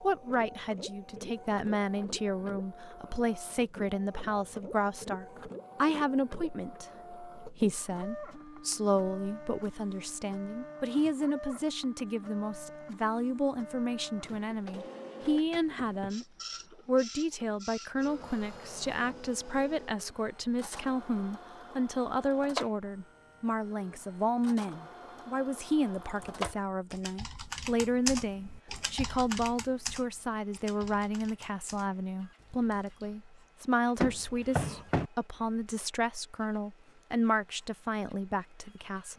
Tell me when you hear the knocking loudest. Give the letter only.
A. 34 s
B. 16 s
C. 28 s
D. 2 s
A.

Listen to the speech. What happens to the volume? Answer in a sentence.
The volume of the speech stays about the same.